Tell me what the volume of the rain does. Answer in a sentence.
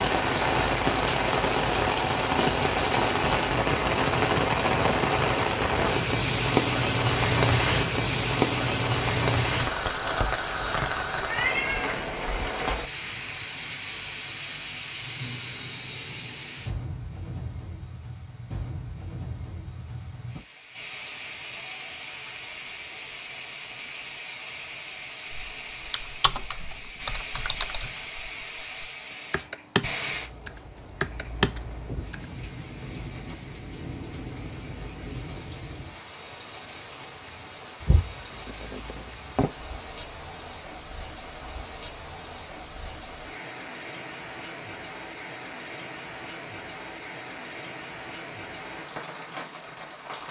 The loudness of the rain goes down.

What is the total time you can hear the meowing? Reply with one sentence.
The meowing can be heard for 3 seconds in total.